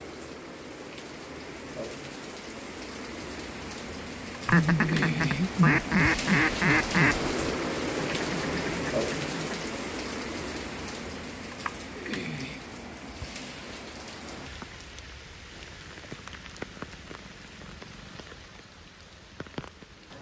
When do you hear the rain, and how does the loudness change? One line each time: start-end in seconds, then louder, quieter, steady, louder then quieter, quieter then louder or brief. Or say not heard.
0.0-20.1 louder then quieter.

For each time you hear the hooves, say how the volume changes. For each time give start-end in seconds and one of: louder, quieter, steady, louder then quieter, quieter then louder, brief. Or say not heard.
not heard.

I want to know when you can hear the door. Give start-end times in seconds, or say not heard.
not heard.